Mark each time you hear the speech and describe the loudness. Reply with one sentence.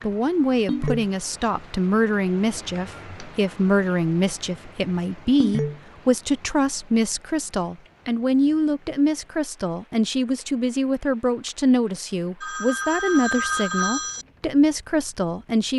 You can hear the speech from 0.0 to 15.7 s, at a steady volume.